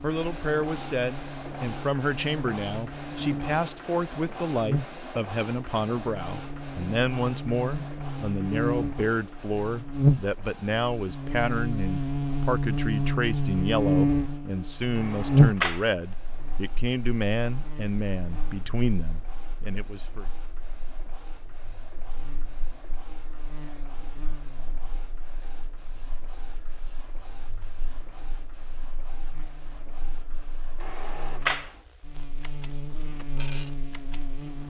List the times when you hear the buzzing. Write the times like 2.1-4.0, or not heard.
0.0-34.6.